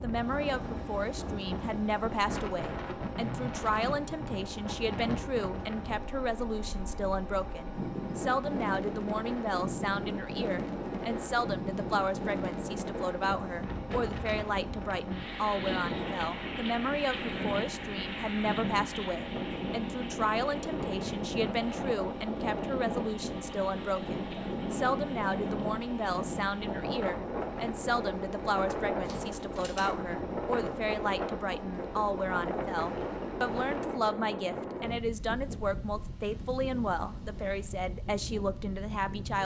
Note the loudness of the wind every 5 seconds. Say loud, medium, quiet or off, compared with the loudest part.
loud, loud, loud, loud, loud, loud, loud, medium.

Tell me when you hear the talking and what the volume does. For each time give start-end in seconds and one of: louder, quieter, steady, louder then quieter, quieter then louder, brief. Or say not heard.
0.0-39.3 steady.